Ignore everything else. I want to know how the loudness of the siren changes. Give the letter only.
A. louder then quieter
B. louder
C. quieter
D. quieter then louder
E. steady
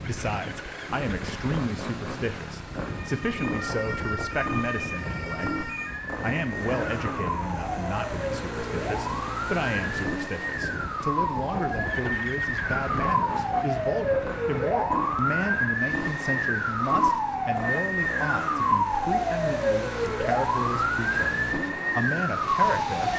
B.